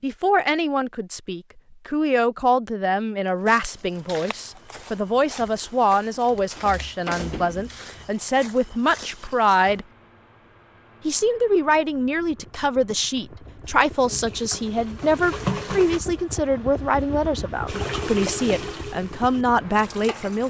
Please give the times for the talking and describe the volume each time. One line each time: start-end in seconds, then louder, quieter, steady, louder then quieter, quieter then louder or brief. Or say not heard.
0.0-9.8 steady
11.1-20.4 steady.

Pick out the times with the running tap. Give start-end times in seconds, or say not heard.
13.9-16.0, 17.6-20.4.